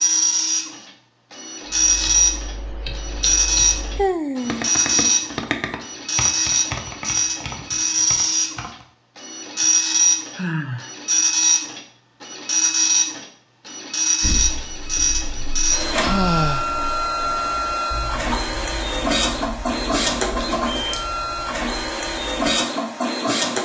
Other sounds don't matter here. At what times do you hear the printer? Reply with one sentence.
The printer can be heard from 0.0 to 23.6 s.